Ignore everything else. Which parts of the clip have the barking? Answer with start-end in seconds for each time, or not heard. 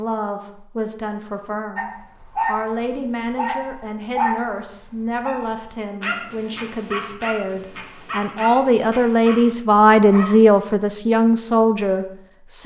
1.8-10.4.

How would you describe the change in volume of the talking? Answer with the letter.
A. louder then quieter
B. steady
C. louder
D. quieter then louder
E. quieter
C.